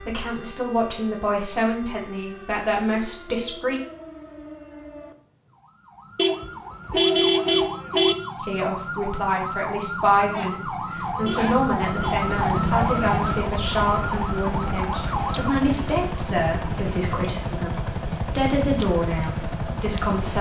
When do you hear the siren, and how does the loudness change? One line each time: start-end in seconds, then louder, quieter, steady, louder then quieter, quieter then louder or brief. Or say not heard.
0.0-15.6 louder.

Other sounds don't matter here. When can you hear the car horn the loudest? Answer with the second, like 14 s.
7 s.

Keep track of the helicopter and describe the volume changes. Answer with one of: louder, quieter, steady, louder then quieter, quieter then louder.
steady.